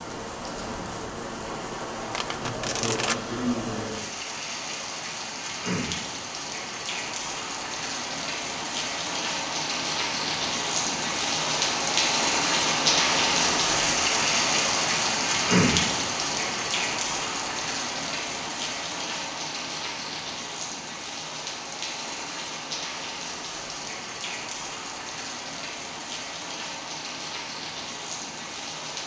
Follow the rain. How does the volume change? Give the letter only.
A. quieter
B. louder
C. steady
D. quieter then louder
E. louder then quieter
E.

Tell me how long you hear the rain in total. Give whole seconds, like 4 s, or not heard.
29 s.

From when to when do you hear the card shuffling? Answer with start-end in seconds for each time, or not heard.
2.1-3.2.